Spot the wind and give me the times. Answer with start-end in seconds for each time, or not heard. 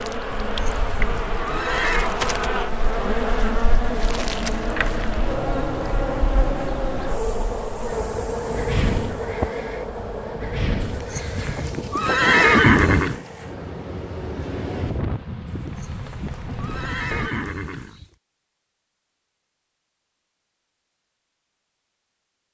0.0-17.3.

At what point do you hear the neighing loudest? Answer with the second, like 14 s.
13 s.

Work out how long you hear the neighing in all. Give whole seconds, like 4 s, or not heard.
7 s.